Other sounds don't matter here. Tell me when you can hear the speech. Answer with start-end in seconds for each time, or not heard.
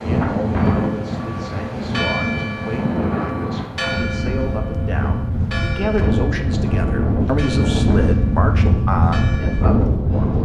0.0-10.3.